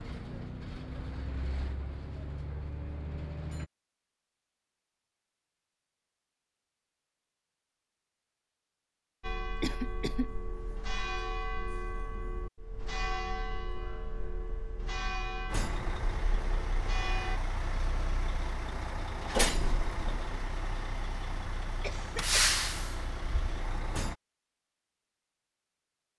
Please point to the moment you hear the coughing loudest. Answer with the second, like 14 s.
10 s.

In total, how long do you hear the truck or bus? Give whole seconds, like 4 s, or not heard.
12 s.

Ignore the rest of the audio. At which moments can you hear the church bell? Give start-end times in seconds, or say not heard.
9.2-17.4.